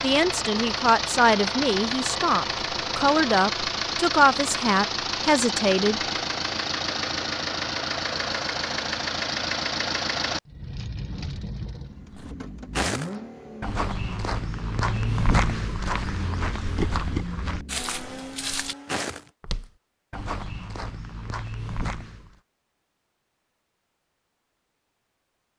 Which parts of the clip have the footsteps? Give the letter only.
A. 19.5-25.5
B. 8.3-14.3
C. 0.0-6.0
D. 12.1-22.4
D.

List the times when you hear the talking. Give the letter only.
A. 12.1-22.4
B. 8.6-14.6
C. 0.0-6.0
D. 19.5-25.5
C.